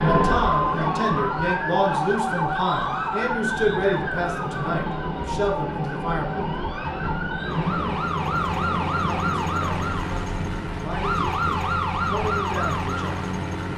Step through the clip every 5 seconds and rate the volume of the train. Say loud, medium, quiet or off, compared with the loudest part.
loud, loud, medium.